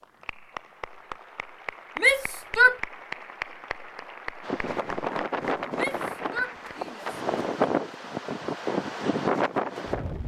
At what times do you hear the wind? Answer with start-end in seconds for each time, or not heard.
4.4-10.2.